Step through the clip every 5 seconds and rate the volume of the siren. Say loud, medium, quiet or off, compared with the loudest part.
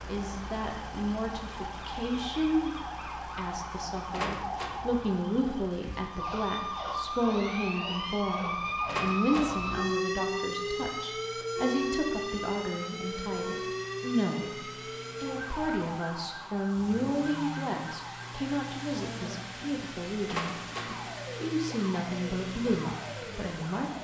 medium, loud, loud, medium, medium.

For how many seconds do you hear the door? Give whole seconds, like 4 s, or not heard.
2 s.